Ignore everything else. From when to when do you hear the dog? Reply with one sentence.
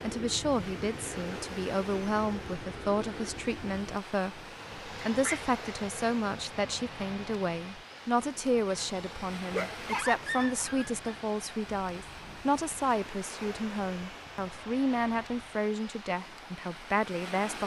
You can hear the dog from 5.0 to 5.5 s and from 9.5 to 11.1 s.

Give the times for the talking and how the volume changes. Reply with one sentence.
The talking can be heard from 0.0 to 17.6 s, at a steady volume.